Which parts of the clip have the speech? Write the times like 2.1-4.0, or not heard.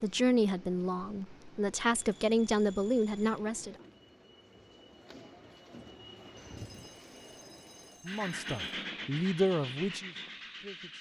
0.0-3.8, 8.1-10.9.